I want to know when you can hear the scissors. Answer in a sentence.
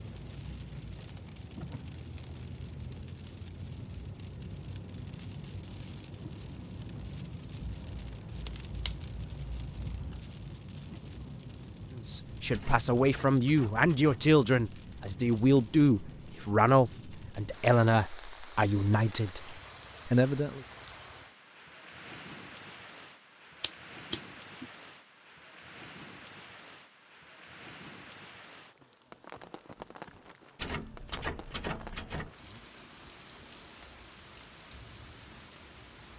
The scissors can be heard from 7.6 to 10.2 s and from 23.6 to 24.6 s.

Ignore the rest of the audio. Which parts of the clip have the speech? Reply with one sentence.
The speech can be heard from 11.9 to 20.6 s.